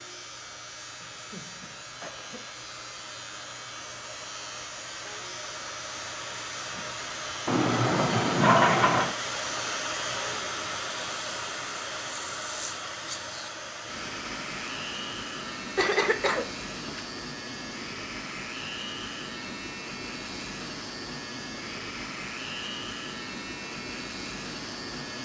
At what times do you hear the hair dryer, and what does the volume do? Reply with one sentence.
You can hear the hair dryer from 0.0 to 25.2 s, getting louder then quieter.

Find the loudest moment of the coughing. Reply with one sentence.
The loudest moment of the coughing is at 16 seconds.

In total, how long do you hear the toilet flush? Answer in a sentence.
You can hear the toilet flush for 2 seconds altogether.